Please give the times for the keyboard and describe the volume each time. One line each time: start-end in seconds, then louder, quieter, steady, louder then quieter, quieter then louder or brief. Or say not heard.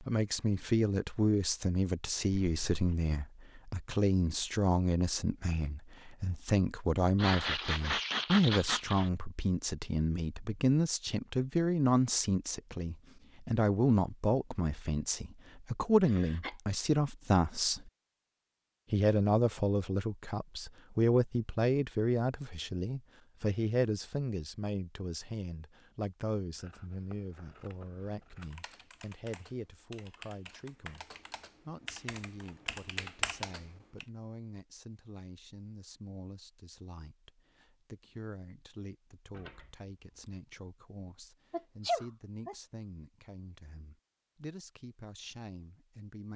28.4-34.0 louder.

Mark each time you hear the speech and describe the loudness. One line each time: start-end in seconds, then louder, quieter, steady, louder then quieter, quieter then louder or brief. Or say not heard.
0.0-17.9 steady
18.9-46.3 quieter.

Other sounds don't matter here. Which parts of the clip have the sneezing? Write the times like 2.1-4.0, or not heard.
7.2-9.1, 16.0-16.6, 41.5-42.5.